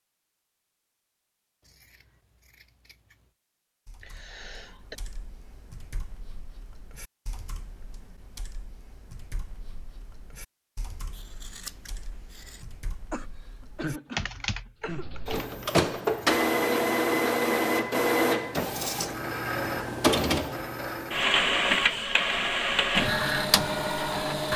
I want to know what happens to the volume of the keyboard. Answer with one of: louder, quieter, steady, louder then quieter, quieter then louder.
louder.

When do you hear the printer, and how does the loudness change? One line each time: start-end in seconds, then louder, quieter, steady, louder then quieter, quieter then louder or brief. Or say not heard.
14.8-24.5 steady.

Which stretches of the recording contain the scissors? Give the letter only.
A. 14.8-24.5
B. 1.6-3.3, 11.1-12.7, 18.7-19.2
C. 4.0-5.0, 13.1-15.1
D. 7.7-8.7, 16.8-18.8
B.